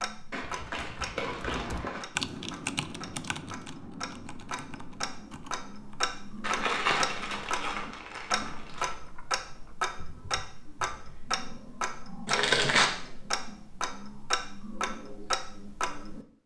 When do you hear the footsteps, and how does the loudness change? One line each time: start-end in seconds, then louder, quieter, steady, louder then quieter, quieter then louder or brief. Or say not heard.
not heard.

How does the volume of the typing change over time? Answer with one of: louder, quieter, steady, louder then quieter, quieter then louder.
quieter.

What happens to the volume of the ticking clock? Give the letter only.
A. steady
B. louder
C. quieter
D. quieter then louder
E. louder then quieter
B.